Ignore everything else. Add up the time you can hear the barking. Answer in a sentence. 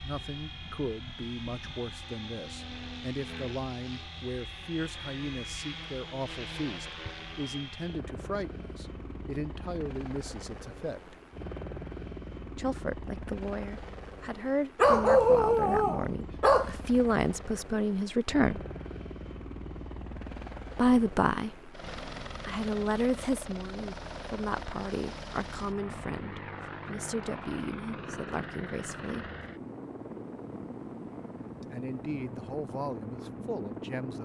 You can hear the barking for 2 seconds altogether.